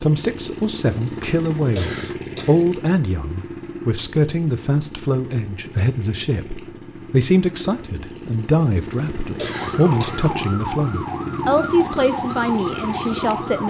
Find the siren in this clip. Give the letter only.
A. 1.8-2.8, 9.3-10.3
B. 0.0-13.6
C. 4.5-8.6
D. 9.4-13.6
D.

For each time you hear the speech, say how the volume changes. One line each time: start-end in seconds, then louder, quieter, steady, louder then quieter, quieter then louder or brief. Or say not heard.
0.0-13.6 steady.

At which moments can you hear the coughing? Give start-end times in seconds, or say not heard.
1.8-2.8, 9.3-10.3.